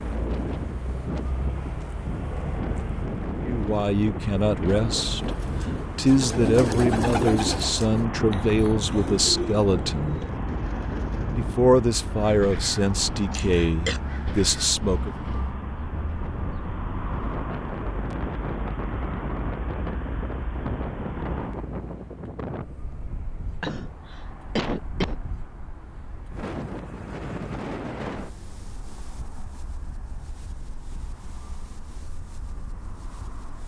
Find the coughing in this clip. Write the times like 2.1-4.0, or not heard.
13.3-14.0, 23.6-25.1.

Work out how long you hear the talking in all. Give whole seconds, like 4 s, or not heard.
10 s.